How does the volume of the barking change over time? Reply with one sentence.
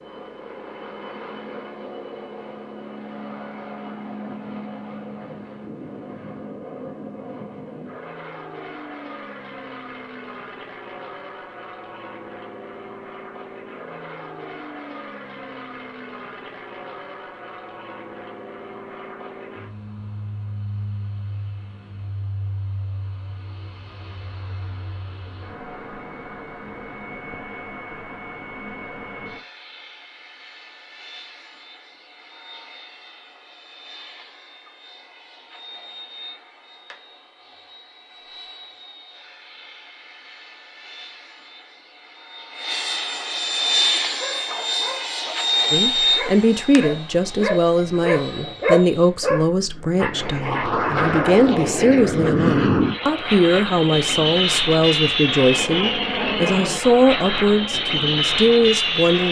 The volume of the barking goes up.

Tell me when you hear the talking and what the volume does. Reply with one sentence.
You can hear the talking from 45.7 to 59.2 s, at a steady volume.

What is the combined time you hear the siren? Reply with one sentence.
The siren can't be heard in this clip.